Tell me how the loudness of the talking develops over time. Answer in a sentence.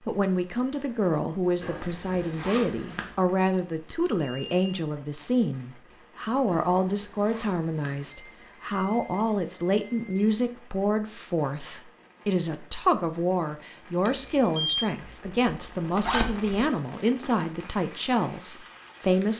The volume of the talking stays about the same.